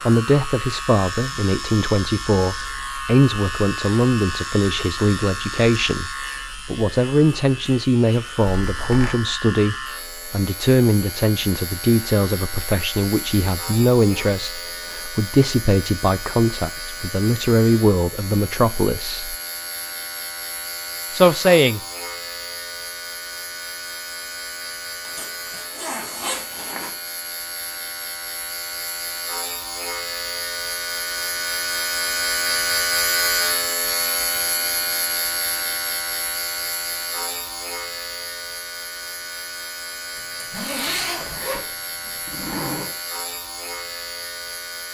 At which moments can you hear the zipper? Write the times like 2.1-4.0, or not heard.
8.6-9.2, 25.1-26.9, 40.1-42.9.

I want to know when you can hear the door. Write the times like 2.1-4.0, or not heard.
not heard.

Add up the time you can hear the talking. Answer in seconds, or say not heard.
20 s.